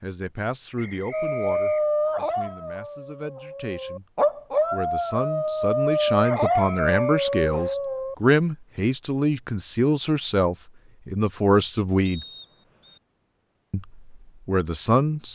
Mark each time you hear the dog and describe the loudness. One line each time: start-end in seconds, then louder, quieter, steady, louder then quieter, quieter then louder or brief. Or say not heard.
1.1-8.2 quieter then louder.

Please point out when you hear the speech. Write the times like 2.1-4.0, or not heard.
0.0-4.0, 4.7-12.2, 13.7-15.3.